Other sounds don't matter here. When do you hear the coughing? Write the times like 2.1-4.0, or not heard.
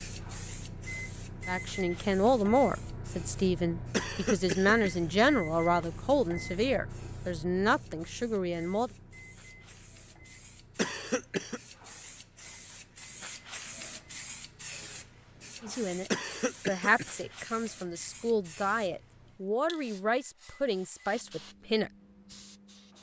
3.9-5.2, 10.8-11.6, 16.1-17.3.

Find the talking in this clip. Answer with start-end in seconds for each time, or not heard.
1.4-8.9, 15.6-21.9.